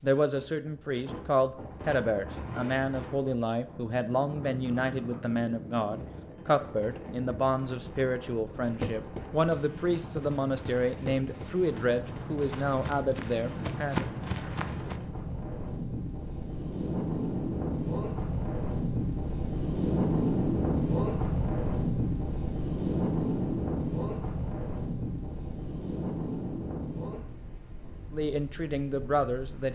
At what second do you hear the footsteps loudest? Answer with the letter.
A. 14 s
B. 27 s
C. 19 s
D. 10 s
A.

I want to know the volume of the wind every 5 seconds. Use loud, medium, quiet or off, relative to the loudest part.
quiet, quiet, medium, loud, loud, medium.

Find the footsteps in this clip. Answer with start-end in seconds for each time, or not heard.
8.8-14.9.